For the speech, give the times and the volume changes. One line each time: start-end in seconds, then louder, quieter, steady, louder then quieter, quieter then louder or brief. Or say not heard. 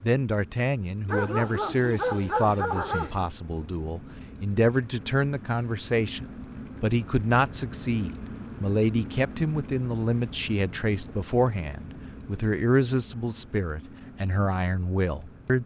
0.0-15.6 steady.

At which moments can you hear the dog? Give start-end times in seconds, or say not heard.
1.1-3.2.